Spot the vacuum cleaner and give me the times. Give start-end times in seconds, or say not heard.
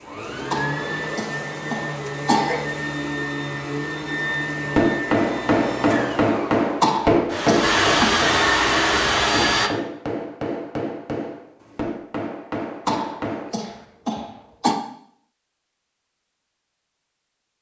0.0-9.7.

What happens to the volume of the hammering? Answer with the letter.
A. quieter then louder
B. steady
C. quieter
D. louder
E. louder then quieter
C.